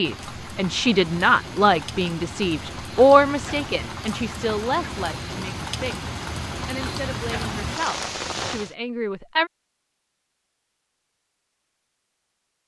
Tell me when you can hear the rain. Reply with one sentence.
You can hear the rain from 0.0 to 8.8 s.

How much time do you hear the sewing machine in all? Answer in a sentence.
The sewing machine can't be heard in this clip.